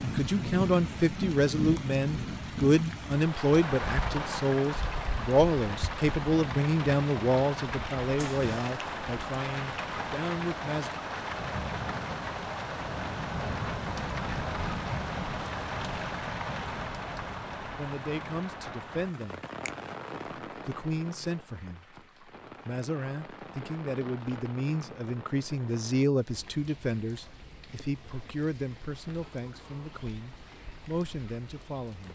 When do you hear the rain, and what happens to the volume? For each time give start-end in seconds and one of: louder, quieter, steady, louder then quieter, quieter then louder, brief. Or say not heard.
0.0-32.0 quieter.